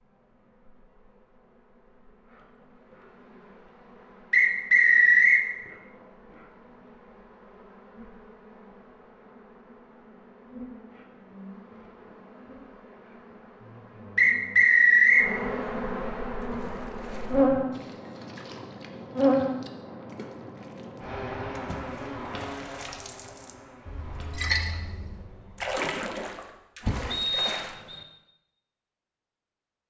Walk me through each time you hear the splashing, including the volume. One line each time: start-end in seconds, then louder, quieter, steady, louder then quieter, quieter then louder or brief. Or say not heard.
16.4-27.8 louder.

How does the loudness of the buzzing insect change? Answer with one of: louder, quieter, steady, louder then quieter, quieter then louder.
louder then quieter.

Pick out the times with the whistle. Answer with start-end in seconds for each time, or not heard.
4.3-5.5, 14.2-15.3, 27.1-28.1.